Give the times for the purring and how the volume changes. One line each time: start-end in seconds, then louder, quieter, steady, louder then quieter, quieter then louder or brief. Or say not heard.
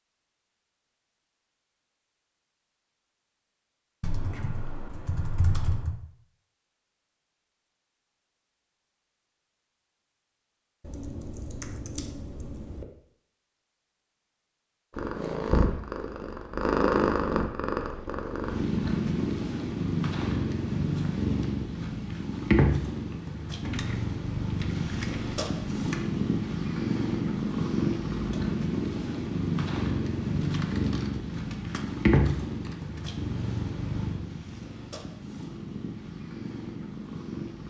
14.9-37.6 quieter.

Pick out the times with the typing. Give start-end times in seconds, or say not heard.
4.0-6.0, 10.8-12.8, 23.6-26.0, 30.4-33.0.